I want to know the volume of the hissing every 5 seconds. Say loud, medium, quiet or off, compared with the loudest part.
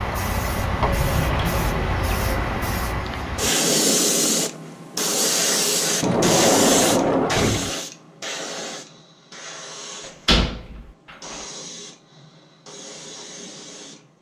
loud, loud, quiet.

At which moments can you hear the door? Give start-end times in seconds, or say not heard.
0.8-2.2, 6.0-7.7, 10.2-10.8.